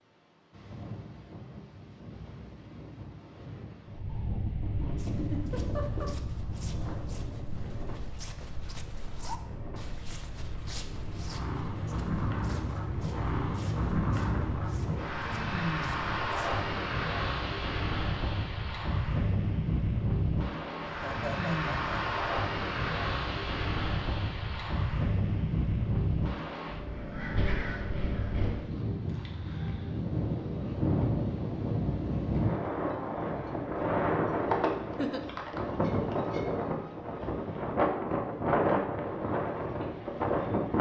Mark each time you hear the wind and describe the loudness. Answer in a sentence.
The wind can be heard from 0.0 to 40.7 s, getting louder.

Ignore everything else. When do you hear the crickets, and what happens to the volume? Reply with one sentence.
The crickets can't be heard in this clip.